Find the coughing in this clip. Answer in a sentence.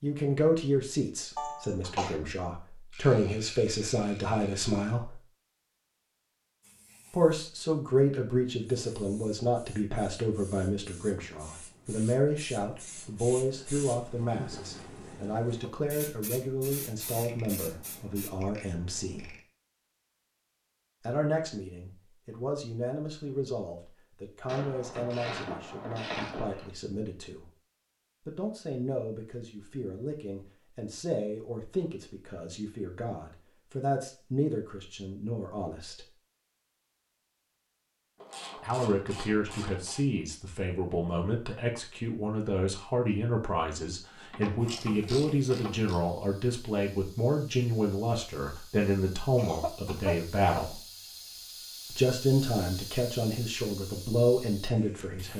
You can hear the coughing from 1.4 to 2.1 s and from 49.4 to 50.6 s.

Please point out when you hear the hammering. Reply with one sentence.
You can't hear the hammering here.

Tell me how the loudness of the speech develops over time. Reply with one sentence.
The loudness of the speech goes down, then up.